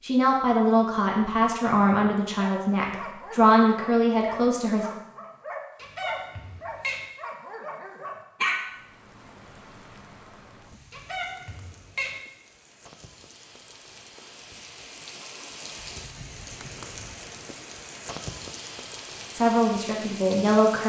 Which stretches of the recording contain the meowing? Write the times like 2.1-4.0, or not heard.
5.8-7.0, 10.9-12.2.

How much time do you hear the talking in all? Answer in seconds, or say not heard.
6 s.